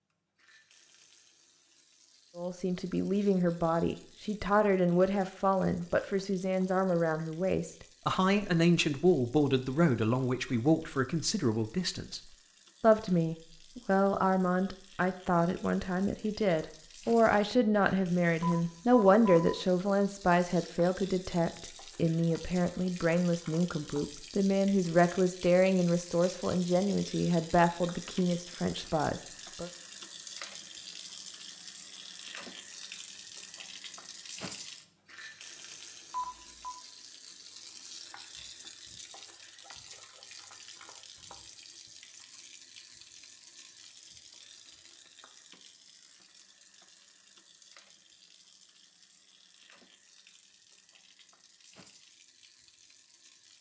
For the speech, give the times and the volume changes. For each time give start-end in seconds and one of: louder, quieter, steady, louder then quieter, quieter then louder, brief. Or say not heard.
2.4-29.7 steady.